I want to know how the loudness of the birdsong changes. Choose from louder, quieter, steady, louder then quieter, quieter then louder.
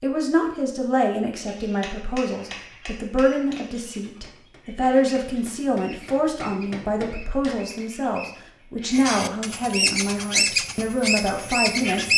louder.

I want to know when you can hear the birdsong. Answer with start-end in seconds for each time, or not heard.
2.5-12.1.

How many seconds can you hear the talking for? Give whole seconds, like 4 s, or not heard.
12 s.